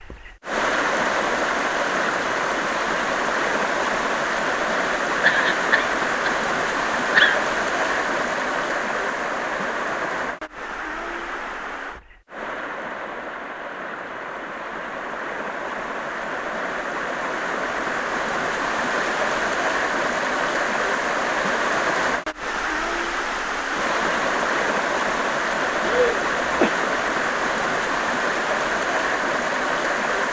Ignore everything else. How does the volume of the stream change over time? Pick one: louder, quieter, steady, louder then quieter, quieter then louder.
quieter then louder.